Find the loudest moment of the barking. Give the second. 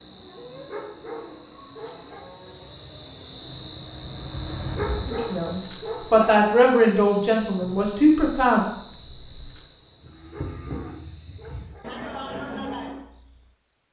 5 s.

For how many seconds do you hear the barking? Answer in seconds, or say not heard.
5 s.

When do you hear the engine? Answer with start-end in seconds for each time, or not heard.
3.2-5.5.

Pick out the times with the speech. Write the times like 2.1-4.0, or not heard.
5.0-8.7.